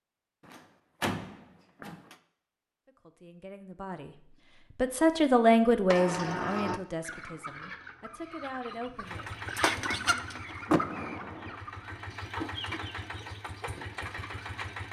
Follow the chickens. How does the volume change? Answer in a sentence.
The loudness of the chickens goes up, then down.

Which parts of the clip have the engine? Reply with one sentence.
You can hear the engine from 9.0 to 14.8 s.